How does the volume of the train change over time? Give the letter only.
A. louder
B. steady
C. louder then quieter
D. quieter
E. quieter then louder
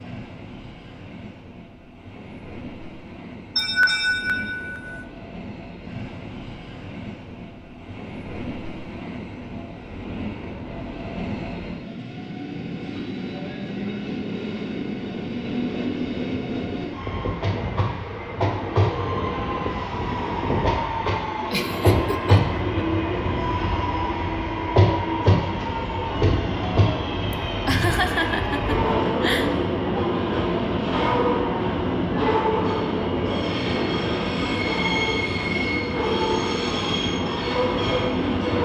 A.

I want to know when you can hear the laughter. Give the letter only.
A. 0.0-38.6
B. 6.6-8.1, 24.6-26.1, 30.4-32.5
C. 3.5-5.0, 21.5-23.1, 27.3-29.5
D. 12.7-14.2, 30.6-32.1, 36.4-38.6
C.